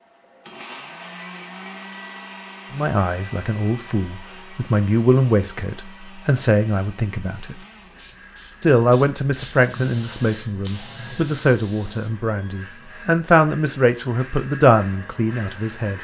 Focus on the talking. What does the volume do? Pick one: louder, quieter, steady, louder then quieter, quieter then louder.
steady.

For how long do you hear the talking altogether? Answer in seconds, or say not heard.
12 s.